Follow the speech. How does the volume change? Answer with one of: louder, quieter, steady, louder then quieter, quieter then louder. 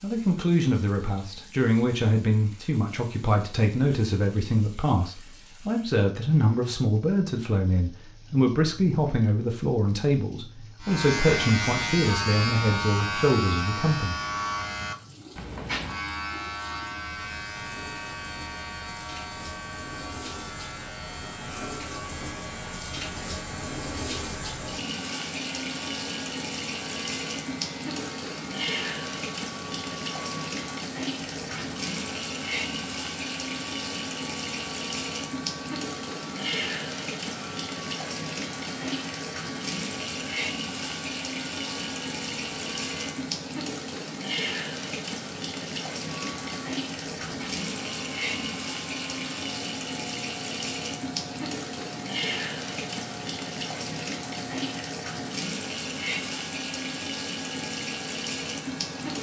steady.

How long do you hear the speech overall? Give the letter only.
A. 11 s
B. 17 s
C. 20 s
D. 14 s
D.